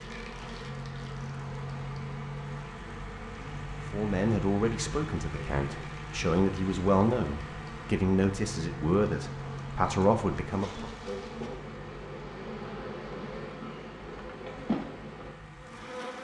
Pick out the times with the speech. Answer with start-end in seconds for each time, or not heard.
3.9-10.9.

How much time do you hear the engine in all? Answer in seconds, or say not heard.
16 s.